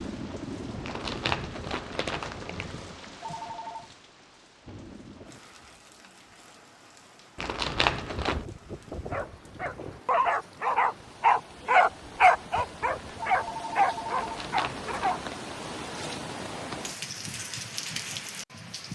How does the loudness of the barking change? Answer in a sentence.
The loudness of the barking goes up, then down.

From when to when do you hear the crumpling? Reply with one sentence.
The crumpling can be heard from 0.8 to 3.0 s, from 7.3 to 8.4 s and from 14.2 to 15.3 s.